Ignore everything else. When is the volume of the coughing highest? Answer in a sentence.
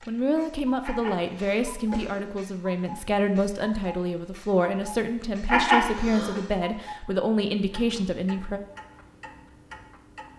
The volume of the coughing peaks at 6 seconds.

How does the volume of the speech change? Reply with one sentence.
The volume of the speech stays about the same.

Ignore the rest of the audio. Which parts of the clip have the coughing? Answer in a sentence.
The coughing can be heard from 0.8 to 2.2 s and from 5.5 to 6.4 s.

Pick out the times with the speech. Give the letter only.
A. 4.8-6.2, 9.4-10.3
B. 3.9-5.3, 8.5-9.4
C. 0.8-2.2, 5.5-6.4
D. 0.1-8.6
D.